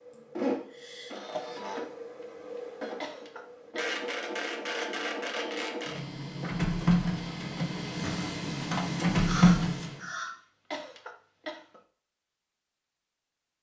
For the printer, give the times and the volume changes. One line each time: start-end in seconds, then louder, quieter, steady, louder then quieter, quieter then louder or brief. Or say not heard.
0.1-10.0 louder.